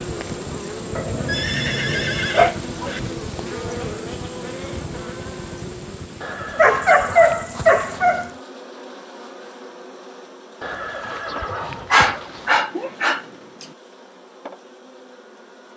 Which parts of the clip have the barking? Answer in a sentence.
You can hear the barking from 0.9 to 2.9 s, from 6.5 to 8.3 s and from 11.9 to 13.7 s.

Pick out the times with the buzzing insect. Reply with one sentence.
You can hear the buzzing insect from 0.0 to 15.7 s.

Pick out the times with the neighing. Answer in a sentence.
The neighing can be heard from 1.2 to 3.0 s, from 6.2 to 8.2 s and from 10.6 to 12.6 s.